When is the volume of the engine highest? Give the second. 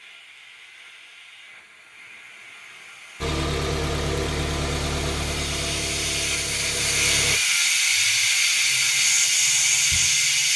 4 s.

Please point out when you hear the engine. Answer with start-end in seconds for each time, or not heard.
3.2-7.4.